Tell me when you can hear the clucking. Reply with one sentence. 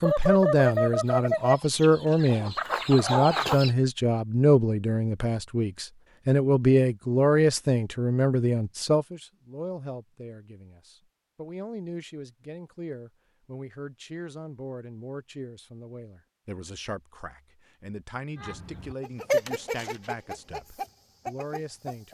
The clucking can be heard from 0.0 to 3.7 s and from 18.4 to 22.0 s.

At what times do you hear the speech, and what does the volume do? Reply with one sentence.
You can hear the speech from 0.0 to 22.0 s, getting quieter.